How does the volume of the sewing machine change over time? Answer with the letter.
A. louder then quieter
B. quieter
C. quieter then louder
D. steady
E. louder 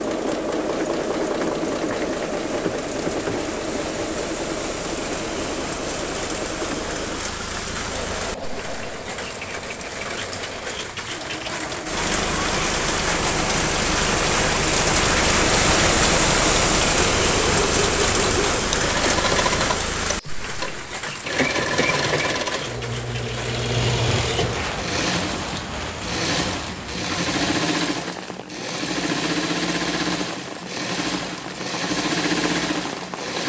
C.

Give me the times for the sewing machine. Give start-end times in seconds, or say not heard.
0.0-33.4.